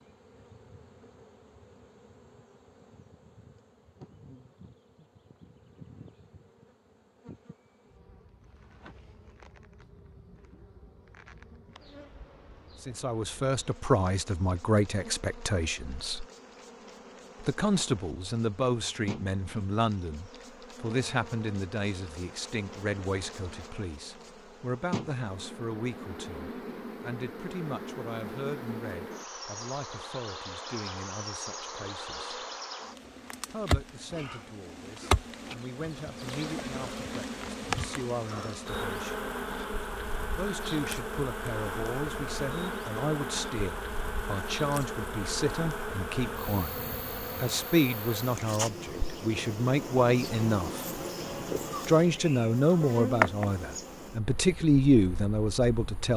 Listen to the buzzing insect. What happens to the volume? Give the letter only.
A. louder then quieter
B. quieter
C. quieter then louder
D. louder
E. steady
D.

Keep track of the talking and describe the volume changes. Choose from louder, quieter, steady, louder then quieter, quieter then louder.
quieter then louder.